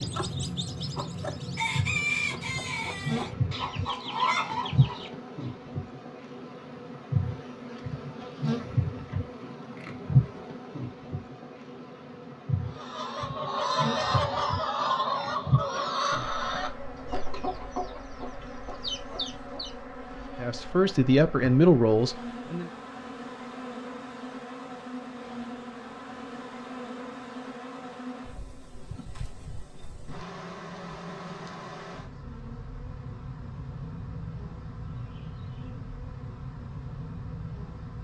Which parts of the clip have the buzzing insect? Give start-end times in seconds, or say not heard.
0.0-37.9.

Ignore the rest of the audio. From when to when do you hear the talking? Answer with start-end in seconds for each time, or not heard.
20.4-22.6.